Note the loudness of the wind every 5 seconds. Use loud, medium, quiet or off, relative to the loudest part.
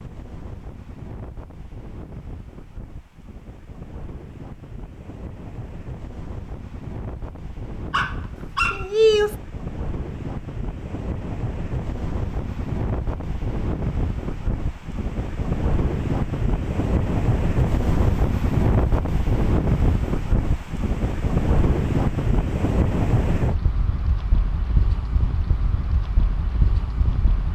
quiet, quiet, medium, loud, loud, medium.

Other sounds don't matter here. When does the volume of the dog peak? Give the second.
9 s.